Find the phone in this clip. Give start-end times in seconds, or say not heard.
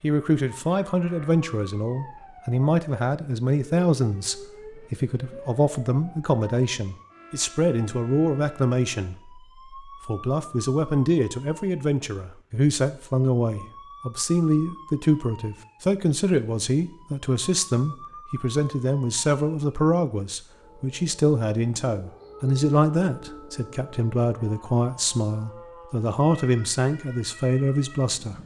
not heard.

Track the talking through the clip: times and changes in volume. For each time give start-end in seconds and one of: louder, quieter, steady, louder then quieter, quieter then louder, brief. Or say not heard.
0.0-28.4 steady.